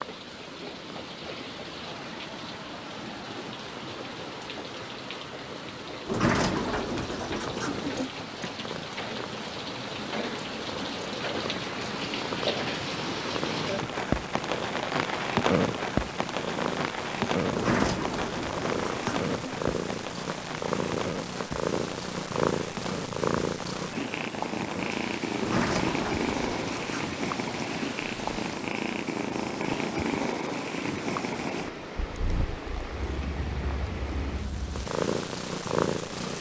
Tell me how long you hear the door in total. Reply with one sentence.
You can hear the door for 6 seconds altogether.